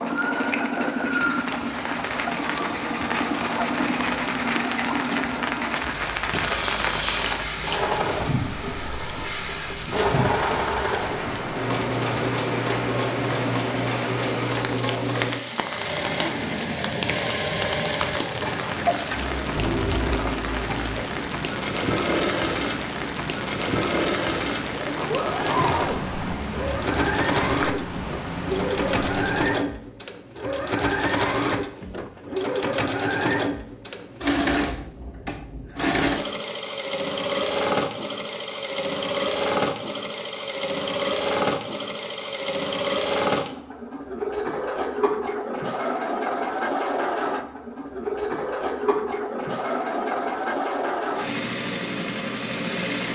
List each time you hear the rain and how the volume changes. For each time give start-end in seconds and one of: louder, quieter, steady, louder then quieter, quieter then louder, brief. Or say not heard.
0.0-29.5 steady.